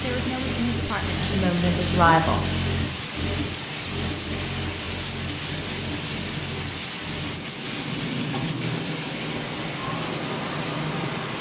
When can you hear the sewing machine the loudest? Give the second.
2 s.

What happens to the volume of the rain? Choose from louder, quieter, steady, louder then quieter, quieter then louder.
steady.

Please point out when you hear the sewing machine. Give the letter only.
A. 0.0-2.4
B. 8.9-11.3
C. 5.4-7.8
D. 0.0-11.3
D.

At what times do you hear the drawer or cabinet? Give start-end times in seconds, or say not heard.
not heard.